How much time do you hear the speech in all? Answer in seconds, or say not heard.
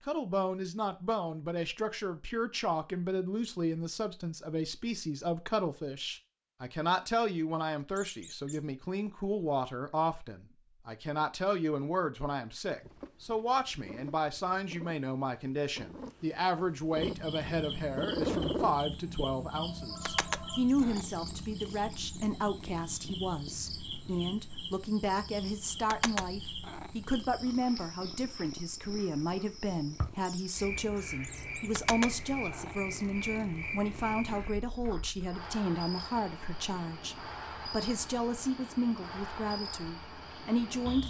41 s.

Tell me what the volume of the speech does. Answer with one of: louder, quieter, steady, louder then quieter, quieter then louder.
steady.